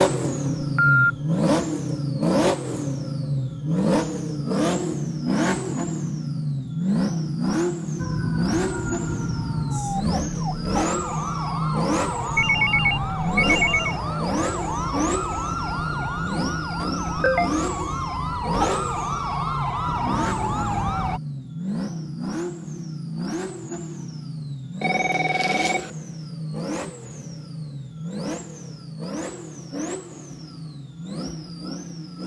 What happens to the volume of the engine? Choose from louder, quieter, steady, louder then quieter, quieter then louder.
quieter.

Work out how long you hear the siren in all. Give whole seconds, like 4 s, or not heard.
13 s.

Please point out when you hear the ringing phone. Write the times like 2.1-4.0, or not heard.
0.6-1.1, 12.3-13.9, 24.8-25.9.